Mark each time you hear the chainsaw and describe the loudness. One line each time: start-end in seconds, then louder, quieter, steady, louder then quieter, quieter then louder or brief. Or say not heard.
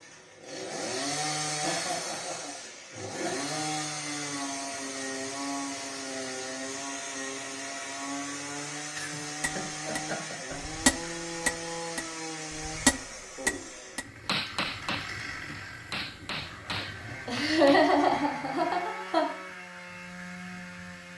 0.0-21.1 quieter.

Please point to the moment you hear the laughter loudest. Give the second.
18 s.